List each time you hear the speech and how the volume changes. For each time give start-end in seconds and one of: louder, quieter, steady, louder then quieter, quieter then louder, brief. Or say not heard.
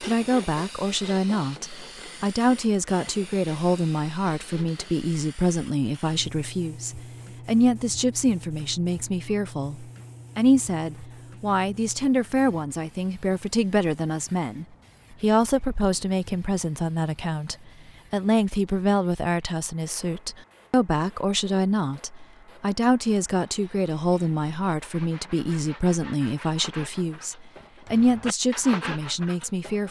0.0-29.8 steady.